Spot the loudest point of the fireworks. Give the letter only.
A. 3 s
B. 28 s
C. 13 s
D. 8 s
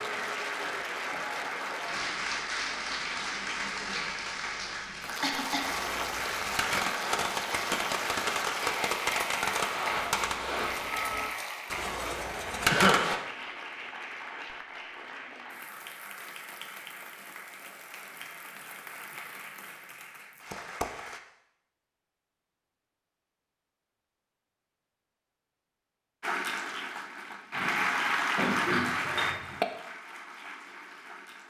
C.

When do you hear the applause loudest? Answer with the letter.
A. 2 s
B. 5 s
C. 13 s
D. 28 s
D.